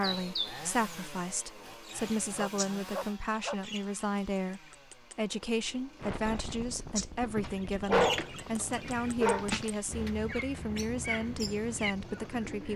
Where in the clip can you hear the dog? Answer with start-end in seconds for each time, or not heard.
2.4-3.5, 7.2-10.1.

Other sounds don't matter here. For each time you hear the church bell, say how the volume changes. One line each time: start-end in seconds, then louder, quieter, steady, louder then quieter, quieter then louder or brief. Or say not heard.
not heard.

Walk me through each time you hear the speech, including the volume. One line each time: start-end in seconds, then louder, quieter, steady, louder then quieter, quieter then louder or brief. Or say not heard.
0.0-12.7 steady.